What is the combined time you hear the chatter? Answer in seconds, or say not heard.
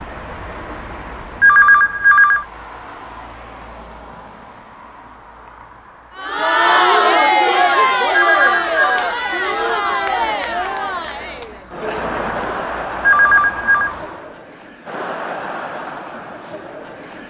11 s.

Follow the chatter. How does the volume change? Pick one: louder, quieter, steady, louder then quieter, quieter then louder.
quieter.